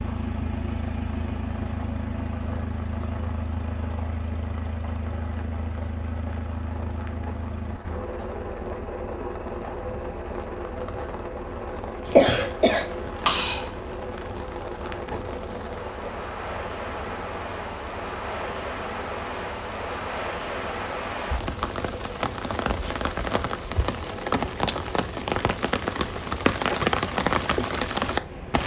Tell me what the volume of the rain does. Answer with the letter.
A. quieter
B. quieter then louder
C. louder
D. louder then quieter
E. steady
C.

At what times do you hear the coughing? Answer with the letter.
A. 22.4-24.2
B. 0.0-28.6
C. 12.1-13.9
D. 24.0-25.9
C.